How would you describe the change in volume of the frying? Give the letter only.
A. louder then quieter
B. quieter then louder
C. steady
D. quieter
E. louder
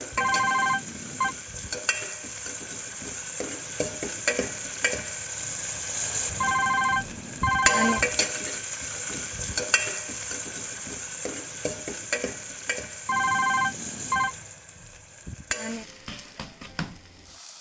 A.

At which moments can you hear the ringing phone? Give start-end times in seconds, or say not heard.
0.1-1.4, 6.4-8.1, 13.1-14.3.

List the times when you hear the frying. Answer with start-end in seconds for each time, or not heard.
0.0-17.5.